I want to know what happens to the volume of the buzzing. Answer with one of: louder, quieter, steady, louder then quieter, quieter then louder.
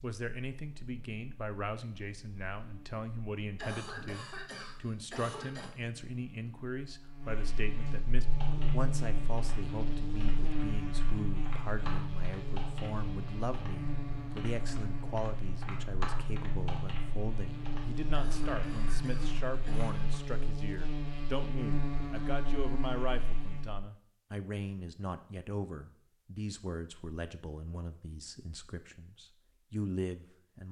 louder.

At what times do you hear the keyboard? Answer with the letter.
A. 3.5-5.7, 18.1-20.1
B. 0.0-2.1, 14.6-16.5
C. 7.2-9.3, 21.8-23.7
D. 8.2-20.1
D.